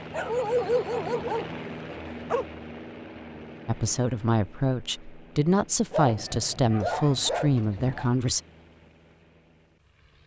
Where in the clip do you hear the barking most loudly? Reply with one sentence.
The loudest moment of the barking is at 1 second.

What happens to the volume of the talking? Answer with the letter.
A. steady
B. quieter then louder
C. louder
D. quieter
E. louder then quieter
A.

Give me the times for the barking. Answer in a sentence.
You can hear the barking from 0.1 to 2.5 s and from 5.9 to 8.1 s.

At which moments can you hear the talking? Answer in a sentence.
The talking can be heard from 3.6 to 8.4 s.